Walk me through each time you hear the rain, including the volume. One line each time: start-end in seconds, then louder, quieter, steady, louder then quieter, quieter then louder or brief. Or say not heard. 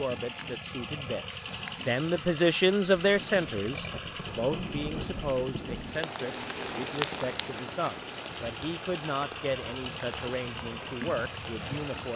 2.8-12.1 louder then quieter.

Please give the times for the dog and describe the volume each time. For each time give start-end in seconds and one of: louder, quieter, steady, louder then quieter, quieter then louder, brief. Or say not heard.
not heard.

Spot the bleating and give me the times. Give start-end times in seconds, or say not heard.
not heard.